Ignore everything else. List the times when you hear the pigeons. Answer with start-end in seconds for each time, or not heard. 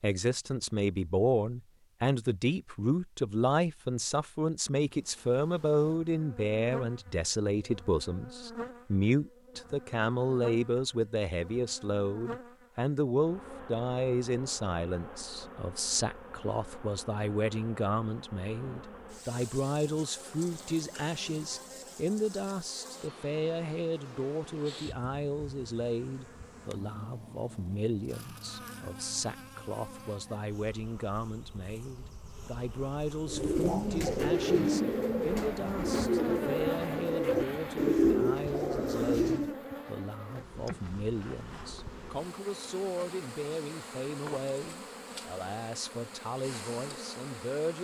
33.2-39.5.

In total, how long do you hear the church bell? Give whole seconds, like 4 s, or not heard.
not heard.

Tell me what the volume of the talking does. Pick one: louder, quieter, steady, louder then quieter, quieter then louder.
quieter.